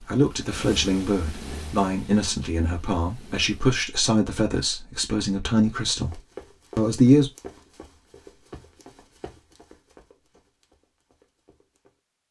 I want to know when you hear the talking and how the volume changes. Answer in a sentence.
The talking can be heard from 0.0 to 7.3 s, at a steady volume.